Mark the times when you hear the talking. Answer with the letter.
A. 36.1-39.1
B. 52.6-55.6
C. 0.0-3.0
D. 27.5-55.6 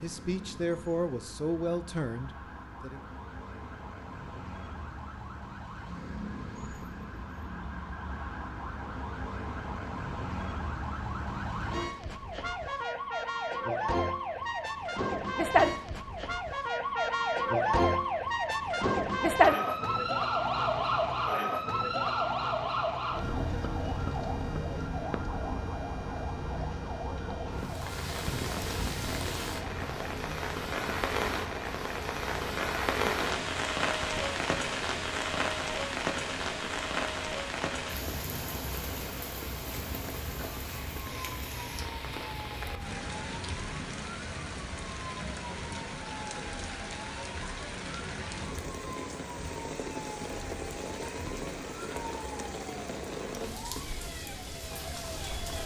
C.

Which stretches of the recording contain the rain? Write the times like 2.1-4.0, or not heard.
27.5-55.6.